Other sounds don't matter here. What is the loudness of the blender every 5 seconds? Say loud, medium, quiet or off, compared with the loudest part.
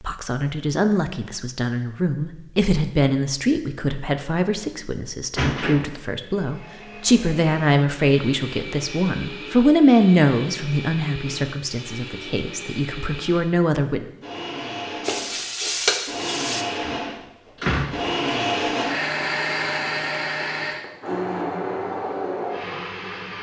off, quiet, medium, loud, loud.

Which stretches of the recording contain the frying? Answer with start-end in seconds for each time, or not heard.
15.1-16.6.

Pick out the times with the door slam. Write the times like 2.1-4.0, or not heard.
5.3-5.9, 16.9-18.0.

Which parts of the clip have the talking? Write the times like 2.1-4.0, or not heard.
0.0-14.1.